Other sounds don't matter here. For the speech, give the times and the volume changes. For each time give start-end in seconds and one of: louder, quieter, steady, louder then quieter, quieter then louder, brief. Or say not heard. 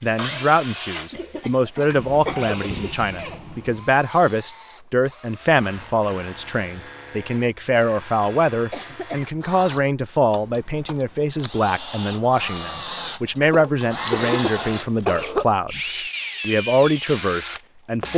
0.0-18.1 steady.